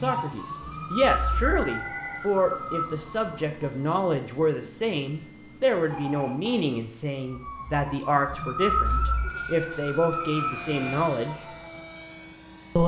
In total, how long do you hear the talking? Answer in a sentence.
The talking can be heard for 11 seconds in total.